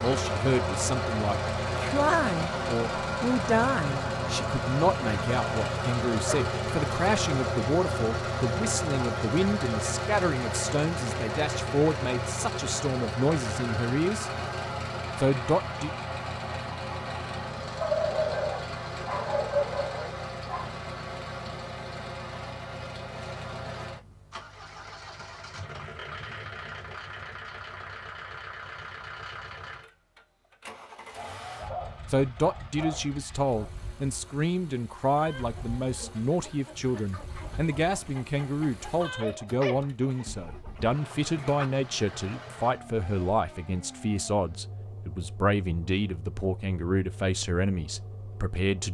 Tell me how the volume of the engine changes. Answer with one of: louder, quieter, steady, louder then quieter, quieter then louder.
quieter.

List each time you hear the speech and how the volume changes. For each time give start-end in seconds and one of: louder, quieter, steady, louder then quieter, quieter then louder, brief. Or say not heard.
0.0-14.3 steady
15.2-15.9 brief
32.1-48.8 steady.